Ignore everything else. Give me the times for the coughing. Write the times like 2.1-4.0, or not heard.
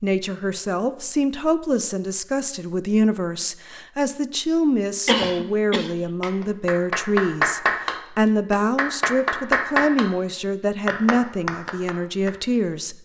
5.0-5.9.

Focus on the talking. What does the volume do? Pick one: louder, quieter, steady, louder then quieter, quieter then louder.
steady.